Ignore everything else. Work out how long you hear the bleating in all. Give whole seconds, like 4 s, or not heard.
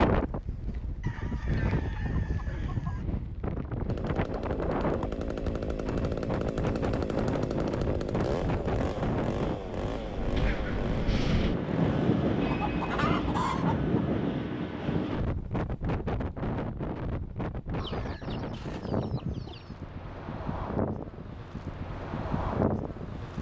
not heard.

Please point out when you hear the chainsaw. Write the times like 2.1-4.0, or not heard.
3.9-13.1.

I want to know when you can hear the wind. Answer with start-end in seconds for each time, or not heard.
0.0-23.3.